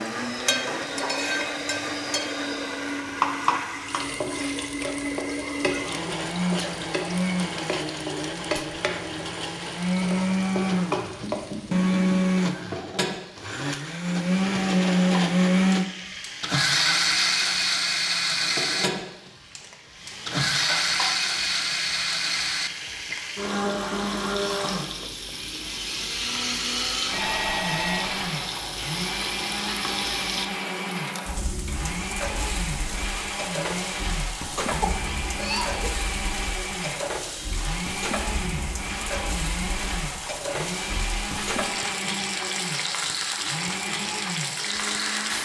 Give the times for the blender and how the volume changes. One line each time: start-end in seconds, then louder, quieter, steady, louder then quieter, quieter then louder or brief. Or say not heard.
0.0-45.4 louder then quieter.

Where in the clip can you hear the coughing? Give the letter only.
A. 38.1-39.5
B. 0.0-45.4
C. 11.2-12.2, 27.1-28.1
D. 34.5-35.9
D.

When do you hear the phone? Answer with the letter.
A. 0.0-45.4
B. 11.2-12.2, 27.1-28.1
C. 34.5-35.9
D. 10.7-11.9
B.